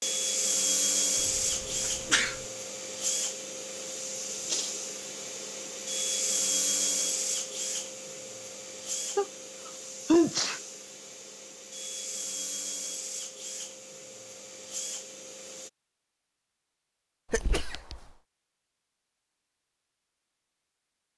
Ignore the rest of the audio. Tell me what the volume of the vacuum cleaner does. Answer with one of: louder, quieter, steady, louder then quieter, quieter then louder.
quieter.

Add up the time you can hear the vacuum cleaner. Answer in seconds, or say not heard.
16 s.